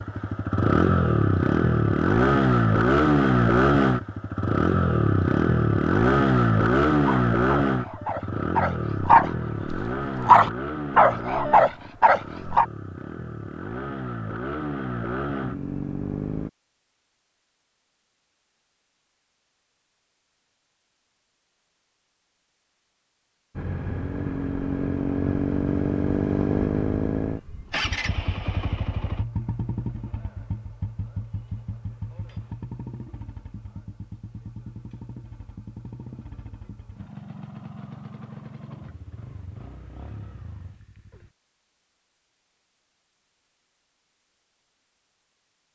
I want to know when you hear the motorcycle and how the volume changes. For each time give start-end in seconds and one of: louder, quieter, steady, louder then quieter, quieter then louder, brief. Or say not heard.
0.0-16.5 quieter
23.6-41.3 quieter.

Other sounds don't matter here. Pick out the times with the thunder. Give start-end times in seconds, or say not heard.
not heard.